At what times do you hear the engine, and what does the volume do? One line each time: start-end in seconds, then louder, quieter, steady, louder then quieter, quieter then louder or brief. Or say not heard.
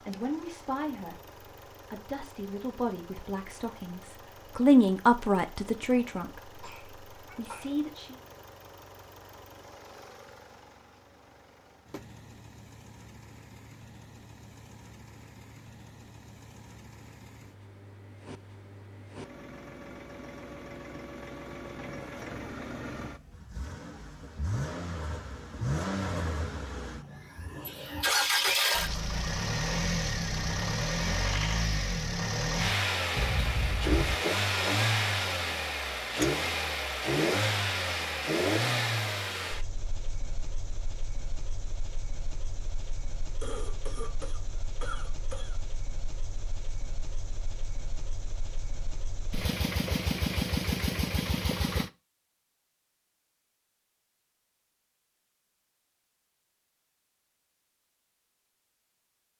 0.0-51.9 louder then quieter.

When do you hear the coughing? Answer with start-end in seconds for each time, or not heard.
6.2-7.8, 33.1-34.1, 43.4-45.5.